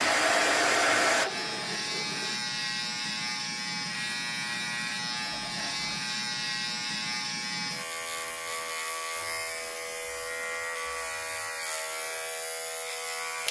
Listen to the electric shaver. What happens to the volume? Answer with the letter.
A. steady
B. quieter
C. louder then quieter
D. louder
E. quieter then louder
A.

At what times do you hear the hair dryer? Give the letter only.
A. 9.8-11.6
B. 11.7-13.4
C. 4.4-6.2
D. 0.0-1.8
D.